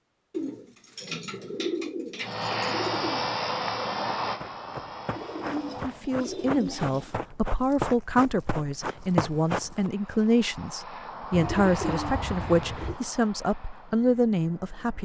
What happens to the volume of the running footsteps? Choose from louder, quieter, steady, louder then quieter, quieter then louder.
louder.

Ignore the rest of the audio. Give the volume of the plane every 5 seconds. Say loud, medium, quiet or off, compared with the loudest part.
loud, quiet, medium.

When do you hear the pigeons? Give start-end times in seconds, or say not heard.
0.3-3.2, 5.2-7.2, 11.3-13.0.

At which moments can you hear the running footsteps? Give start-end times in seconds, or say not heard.
4.4-9.9.